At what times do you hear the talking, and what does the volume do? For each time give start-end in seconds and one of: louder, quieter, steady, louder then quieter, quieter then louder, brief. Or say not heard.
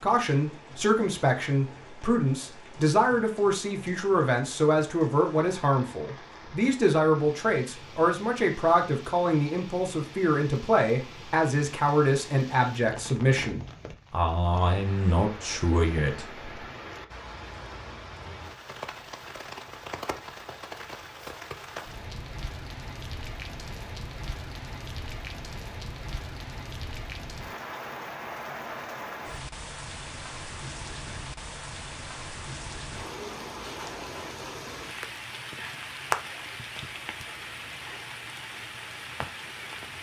0.0-16.4 steady.